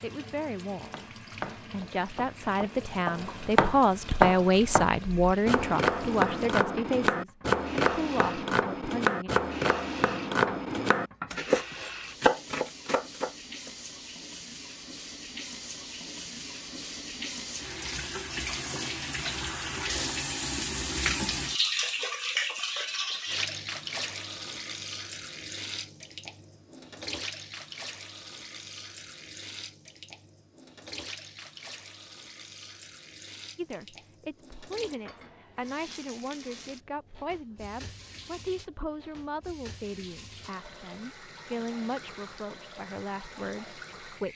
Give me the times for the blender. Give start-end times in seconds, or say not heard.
not heard.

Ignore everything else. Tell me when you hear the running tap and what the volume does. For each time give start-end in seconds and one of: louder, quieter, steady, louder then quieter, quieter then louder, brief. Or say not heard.
0.0-44.3 louder then quieter.